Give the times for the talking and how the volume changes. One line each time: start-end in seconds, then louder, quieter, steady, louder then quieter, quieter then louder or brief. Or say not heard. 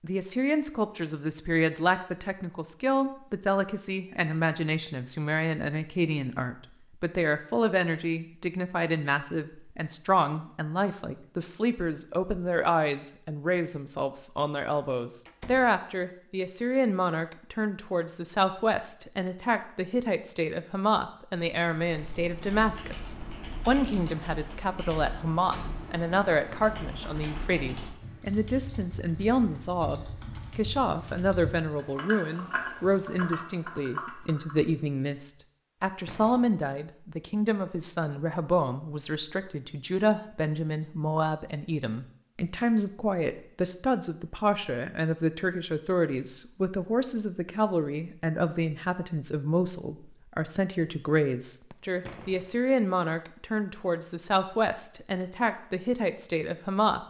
0.0-57.0 steady.